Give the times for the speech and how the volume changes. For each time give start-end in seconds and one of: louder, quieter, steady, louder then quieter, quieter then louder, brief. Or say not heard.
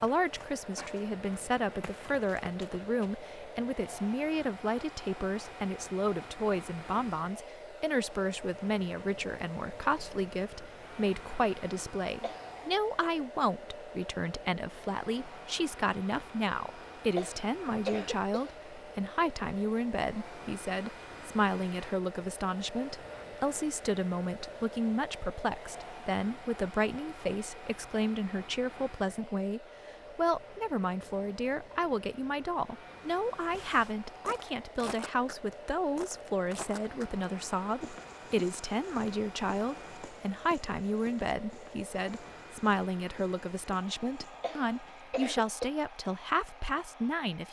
0.0-47.4 steady.